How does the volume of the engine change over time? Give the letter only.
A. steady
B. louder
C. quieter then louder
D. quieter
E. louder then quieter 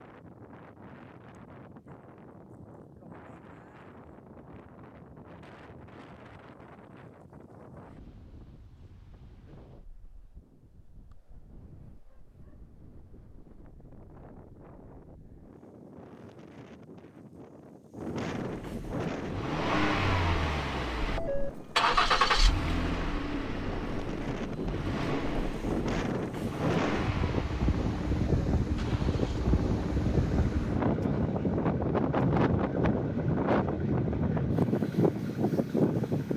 D.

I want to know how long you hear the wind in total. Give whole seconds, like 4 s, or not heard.
36 s.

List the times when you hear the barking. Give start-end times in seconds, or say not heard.
not heard.